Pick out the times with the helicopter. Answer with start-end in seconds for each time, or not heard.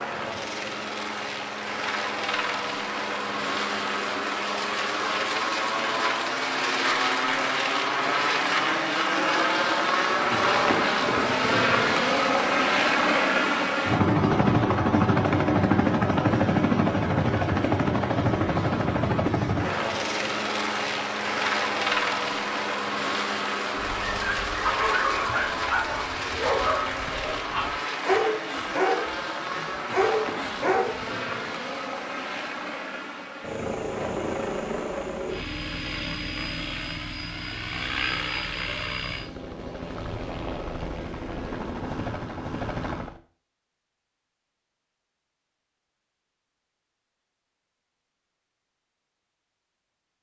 0.0-43.2.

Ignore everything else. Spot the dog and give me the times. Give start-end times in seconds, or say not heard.
23.8-31.1.